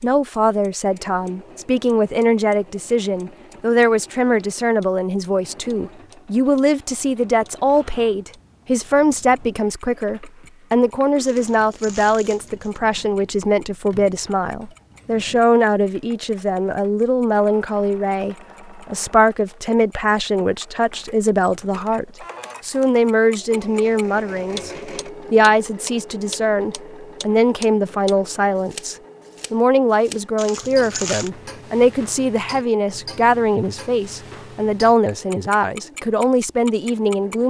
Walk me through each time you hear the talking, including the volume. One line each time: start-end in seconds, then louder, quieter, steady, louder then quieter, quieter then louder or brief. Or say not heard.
0.0-37.4 steady.